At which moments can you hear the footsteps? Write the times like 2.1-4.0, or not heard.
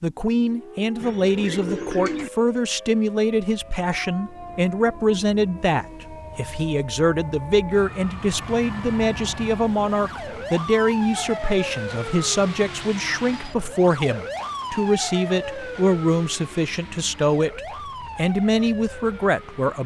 not heard.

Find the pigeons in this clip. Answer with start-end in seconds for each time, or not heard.
0.9-2.3.